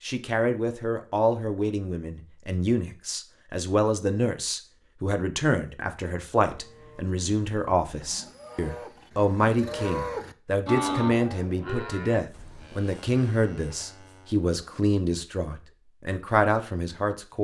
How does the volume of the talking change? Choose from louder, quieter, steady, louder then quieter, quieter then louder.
steady.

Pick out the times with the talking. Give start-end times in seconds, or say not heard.
0.0-17.3.